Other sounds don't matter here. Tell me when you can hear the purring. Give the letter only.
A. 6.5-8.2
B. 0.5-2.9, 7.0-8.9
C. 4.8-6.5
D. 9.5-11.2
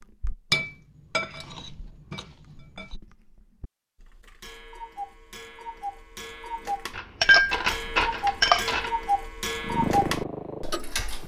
D.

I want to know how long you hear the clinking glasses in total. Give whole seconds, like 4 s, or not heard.
4 s.